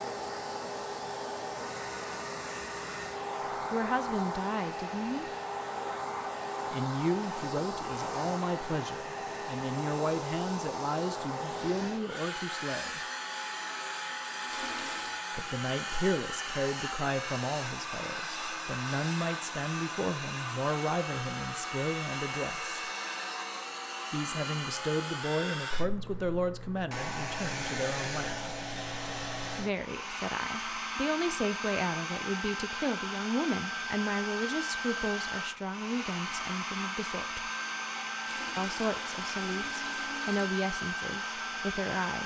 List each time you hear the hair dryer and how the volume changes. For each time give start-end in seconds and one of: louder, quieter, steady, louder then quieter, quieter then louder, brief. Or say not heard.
0.0-42.2 steady.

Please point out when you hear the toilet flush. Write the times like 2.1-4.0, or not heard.
14.4-15.2, 38.2-40.4.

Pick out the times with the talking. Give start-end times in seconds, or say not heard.
3.7-5.2, 6.7-13.0, 15.3-22.8, 24.1-28.5, 29.6-37.5, 38.5-42.2.